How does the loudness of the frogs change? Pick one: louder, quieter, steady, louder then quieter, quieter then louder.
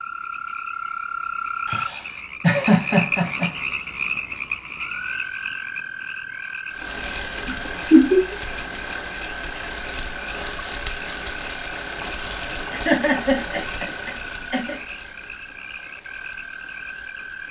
quieter.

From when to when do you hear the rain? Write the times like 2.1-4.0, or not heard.
6.7-17.4.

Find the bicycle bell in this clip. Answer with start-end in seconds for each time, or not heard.
not heard.